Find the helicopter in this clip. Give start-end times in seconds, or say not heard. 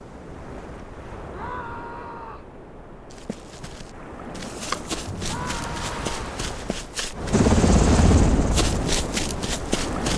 7.3-10.0.